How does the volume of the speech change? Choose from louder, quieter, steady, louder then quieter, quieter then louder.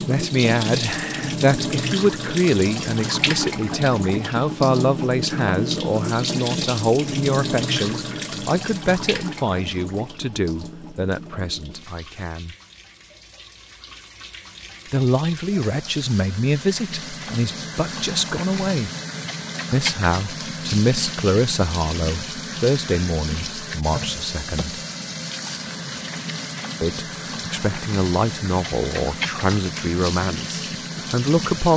steady.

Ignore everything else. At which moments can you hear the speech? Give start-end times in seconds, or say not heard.
0.1-12.6, 14.9-18.9, 19.7-24.8, 26.8-31.7.